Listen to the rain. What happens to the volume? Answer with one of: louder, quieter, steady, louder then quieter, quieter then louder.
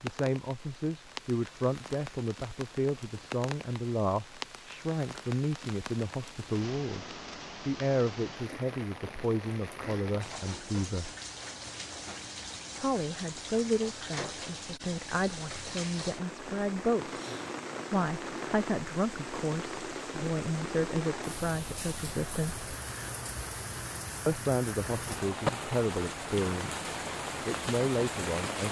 louder.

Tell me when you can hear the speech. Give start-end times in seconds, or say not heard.
0.0-11.1, 12.8-17.1, 17.9-22.7, 24.2-26.9, 27.4-28.6.